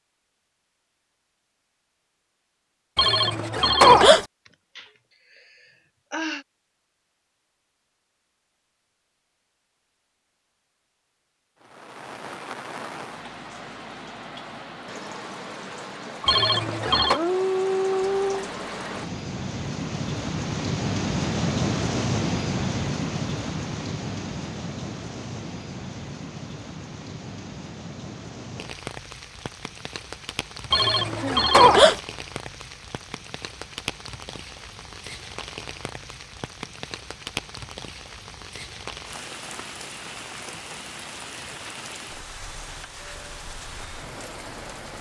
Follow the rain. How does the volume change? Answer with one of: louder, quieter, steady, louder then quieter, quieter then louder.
louder then quieter.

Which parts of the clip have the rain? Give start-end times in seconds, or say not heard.
11.6-44.9.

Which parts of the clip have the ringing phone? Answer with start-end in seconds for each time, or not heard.
3.0-4.2, 16.2-17.2, 30.7-32.0.